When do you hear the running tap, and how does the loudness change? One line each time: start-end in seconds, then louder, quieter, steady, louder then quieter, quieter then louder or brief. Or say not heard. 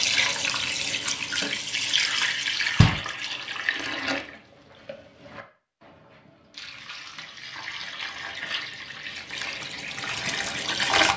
0.0-11.1 quieter then louder.